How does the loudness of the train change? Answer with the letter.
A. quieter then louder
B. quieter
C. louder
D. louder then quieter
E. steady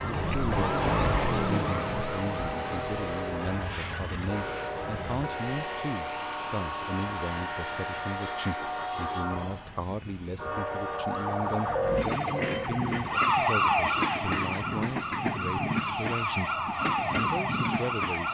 E.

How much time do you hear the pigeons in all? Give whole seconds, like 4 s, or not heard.
not heard.